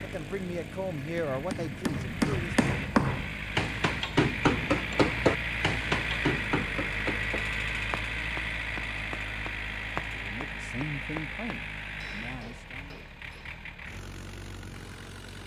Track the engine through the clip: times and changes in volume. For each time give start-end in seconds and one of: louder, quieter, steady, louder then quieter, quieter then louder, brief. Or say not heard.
0.0-15.4 louder then quieter.